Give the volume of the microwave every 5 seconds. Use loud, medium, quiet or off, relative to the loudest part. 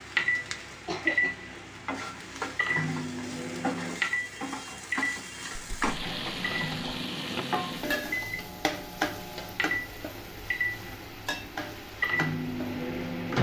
loud, medium, loud.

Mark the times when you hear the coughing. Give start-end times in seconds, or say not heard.
0.7-1.4.